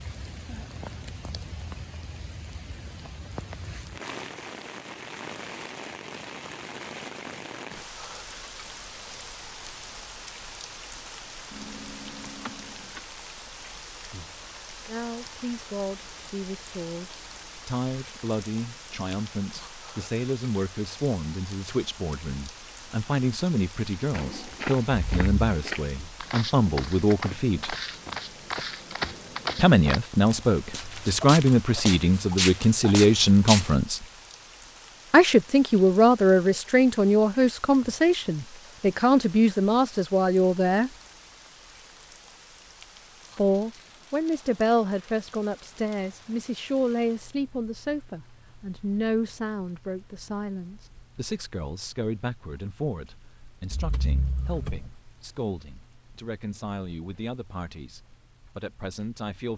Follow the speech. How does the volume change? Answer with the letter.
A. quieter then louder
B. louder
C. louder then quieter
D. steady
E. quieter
C.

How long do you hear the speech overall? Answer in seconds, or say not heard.
39 s.